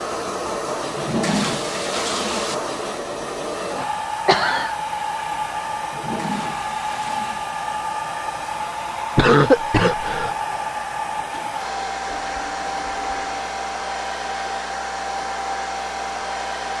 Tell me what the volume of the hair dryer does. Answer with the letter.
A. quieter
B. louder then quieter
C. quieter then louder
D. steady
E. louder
D.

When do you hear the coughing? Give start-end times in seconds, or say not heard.
3.8-4.8, 9.2-10.3.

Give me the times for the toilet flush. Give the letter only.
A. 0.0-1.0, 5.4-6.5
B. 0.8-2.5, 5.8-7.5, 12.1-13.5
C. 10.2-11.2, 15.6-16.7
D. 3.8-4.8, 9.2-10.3
B.